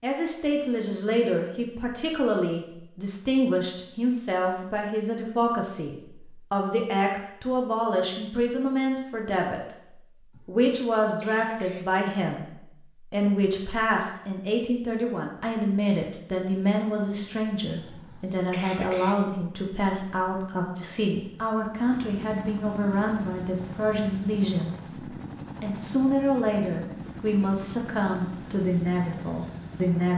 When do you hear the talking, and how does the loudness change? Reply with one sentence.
You can hear the talking from 0.0 to 30.1 s, at a steady volume.